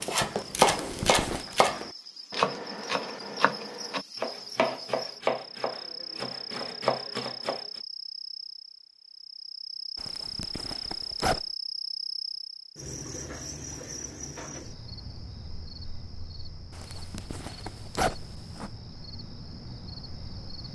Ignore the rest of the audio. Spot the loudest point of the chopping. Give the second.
1 s.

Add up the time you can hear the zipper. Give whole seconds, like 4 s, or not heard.
4 s.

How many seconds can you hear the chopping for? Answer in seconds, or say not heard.
8 s.